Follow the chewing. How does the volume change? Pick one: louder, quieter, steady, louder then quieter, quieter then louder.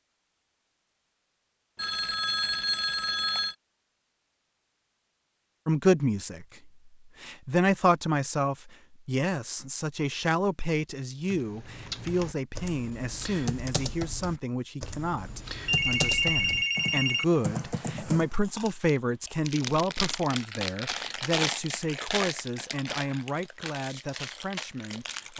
louder then quieter.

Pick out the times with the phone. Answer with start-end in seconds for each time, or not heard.
1.8-3.5, 15.7-17.2.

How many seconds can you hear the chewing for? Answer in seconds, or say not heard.
7 s.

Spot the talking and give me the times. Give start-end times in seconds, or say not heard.
5.7-6.5, 7.2-25.3.